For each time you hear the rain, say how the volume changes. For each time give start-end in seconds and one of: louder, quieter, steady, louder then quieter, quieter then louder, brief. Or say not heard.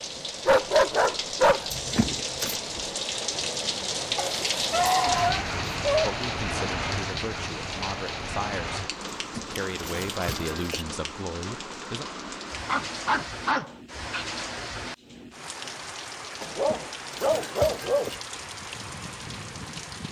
0.0-20.0 quieter.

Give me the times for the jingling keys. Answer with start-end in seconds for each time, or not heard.
1.7-2.6, 9.1-10.8, 16.5-18.2.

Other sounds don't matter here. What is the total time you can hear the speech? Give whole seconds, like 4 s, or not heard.
6 s.